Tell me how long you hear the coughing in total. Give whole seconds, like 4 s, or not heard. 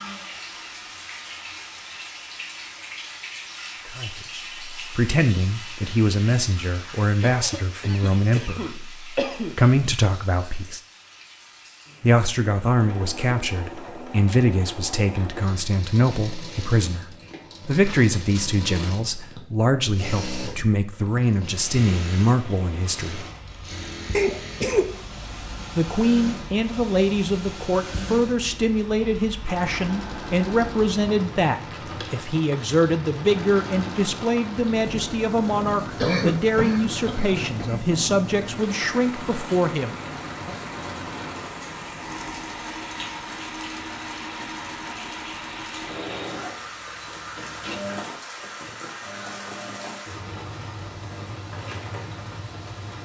5 s.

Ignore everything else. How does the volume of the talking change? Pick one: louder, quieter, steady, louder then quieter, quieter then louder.
steady.